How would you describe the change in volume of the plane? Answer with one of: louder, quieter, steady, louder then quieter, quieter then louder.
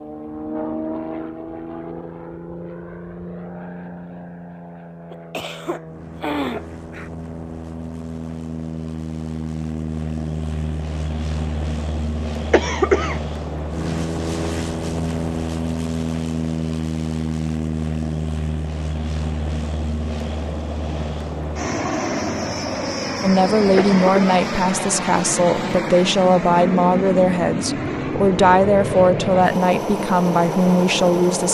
louder.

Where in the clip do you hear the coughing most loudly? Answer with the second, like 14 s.
13 s.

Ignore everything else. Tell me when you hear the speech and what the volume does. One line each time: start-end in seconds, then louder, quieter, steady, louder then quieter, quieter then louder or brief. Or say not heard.
23.2-31.4 steady.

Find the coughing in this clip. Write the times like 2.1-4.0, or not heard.
5.1-7.1, 12.5-13.2, 23.8-24.4.